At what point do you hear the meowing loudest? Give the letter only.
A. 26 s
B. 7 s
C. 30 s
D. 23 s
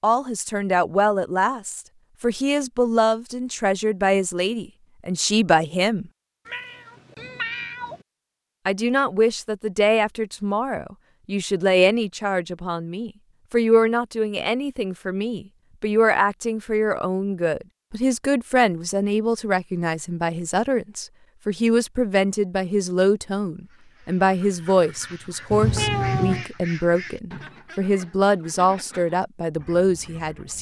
A.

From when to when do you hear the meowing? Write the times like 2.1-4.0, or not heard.
6.5-8.1, 25.5-26.4.